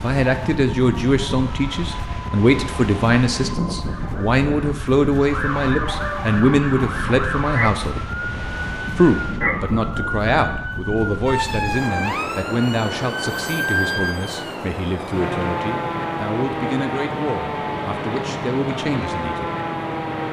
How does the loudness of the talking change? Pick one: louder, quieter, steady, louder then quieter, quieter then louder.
quieter.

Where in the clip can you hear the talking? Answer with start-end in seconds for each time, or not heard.
0.0-8.1, 8.9-19.5.